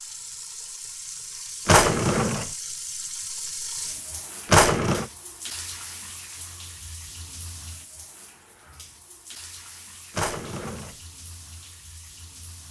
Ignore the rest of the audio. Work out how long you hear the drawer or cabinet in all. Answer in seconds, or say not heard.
2 s.